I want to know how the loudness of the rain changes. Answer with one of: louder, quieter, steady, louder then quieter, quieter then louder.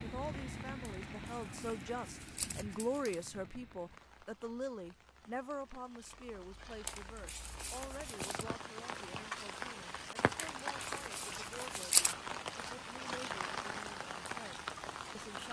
quieter then louder.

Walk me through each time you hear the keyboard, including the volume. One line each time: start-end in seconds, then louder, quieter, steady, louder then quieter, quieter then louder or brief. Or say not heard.
not heard.